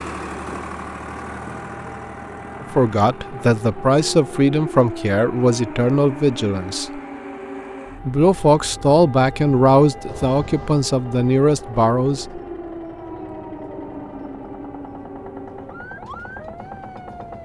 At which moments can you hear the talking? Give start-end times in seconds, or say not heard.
2.6-7.0, 8.1-12.4.